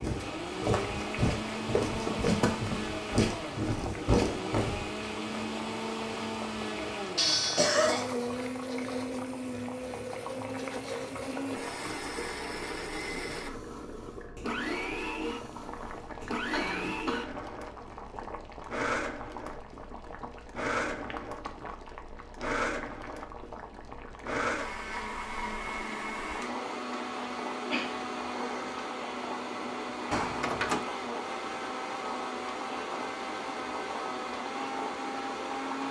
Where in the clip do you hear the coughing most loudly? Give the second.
8 s.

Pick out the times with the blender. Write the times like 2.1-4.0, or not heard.
0.0-35.8.